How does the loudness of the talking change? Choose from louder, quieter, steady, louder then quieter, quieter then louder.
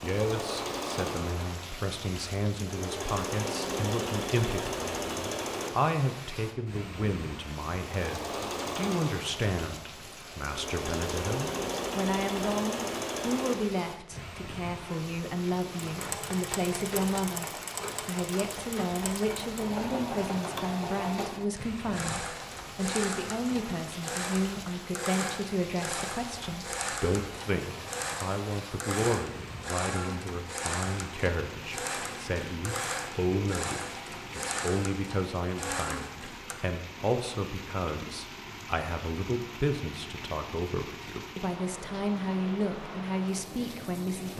steady.